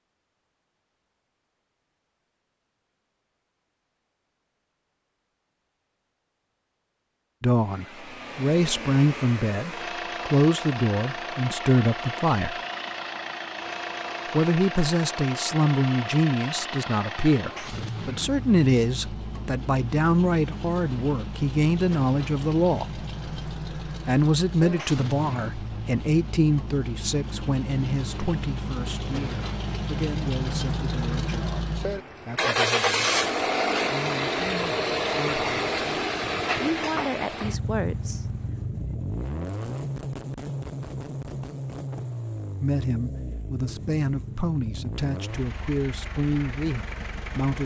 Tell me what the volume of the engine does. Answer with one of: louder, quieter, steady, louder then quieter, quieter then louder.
louder then quieter.